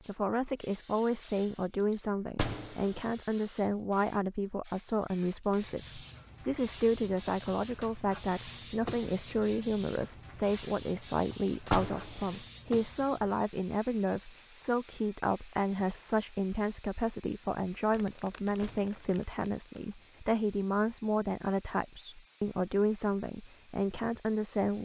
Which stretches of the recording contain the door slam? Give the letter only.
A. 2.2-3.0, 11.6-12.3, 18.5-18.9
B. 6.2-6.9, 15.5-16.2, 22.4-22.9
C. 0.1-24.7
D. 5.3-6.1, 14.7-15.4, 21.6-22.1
A.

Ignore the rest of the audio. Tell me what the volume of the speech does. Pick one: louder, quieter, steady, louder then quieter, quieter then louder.
steady.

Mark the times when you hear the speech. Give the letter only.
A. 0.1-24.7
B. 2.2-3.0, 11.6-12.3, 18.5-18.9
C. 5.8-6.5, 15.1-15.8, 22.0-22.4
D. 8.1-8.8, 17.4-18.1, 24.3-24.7
A.